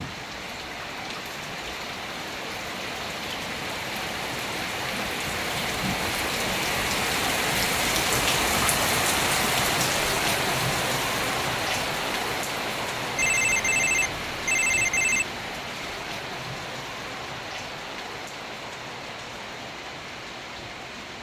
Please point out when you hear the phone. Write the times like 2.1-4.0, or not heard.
13.2-15.2.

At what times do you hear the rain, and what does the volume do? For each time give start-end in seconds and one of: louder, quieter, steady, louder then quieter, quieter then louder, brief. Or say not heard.
0.0-21.1 louder then quieter.